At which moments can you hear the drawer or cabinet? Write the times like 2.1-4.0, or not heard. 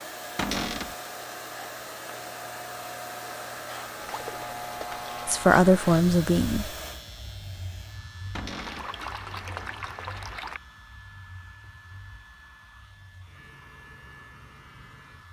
0.3-0.9, 8.3-8.9.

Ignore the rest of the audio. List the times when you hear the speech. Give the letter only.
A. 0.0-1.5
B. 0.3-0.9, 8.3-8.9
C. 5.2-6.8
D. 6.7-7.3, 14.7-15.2
C.